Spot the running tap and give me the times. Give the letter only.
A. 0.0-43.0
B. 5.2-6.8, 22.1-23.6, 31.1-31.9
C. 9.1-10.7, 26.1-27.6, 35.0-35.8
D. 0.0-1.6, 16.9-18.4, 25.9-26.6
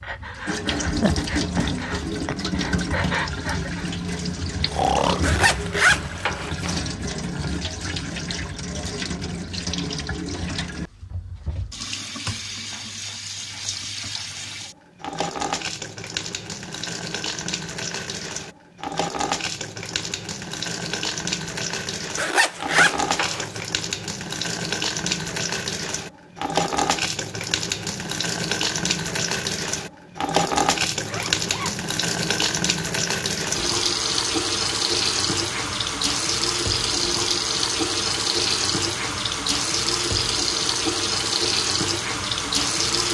A.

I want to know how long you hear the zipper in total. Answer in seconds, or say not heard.
4 s.